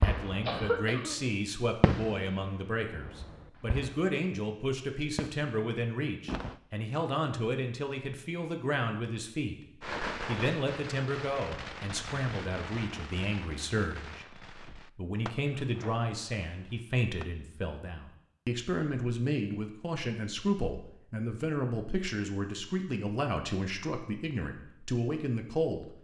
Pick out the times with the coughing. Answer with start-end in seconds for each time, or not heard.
0.5-1.2.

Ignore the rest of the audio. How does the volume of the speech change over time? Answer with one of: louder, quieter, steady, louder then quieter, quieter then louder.
steady.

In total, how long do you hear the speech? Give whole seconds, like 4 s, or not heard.
25 s.